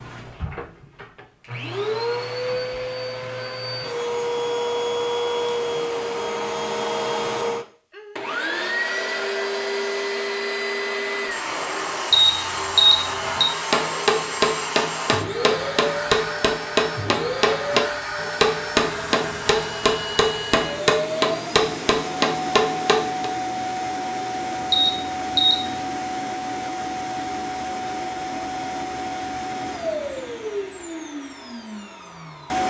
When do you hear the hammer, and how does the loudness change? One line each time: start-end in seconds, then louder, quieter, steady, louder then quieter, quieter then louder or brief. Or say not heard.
13.3-23.3 steady.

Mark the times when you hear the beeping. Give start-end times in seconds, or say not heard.
12.1-13.4, 24.7-25.8.